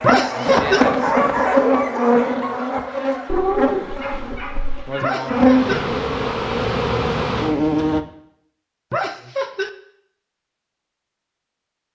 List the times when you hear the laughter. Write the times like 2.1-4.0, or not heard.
0.0-0.8, 5.0-5.8, 8.9-9.7.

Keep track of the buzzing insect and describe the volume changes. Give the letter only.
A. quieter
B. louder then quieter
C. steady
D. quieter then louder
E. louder
D.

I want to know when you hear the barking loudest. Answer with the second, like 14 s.
2 s.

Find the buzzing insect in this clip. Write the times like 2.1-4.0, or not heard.
0.0-8.1.